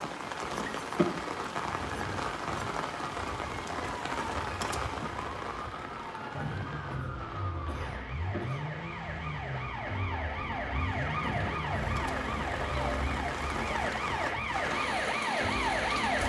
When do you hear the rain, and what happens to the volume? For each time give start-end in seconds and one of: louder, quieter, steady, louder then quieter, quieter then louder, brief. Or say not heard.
0.0-16.2 quieter then louder.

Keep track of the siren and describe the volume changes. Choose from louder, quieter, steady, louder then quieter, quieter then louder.
louder.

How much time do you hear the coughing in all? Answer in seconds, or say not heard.
4 s.